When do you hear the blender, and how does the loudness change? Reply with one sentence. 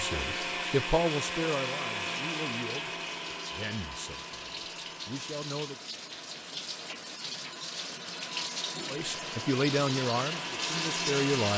You can hear the blender from 0.0 to 11.5 s, getting quieter then louder.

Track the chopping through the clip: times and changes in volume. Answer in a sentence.
You can't hear the chopping here.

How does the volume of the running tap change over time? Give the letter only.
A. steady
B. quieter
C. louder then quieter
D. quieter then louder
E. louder
E.